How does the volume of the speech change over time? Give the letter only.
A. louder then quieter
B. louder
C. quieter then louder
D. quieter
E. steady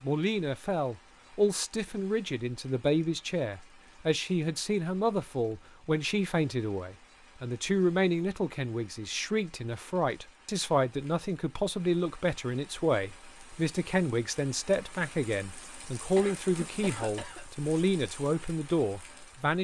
E.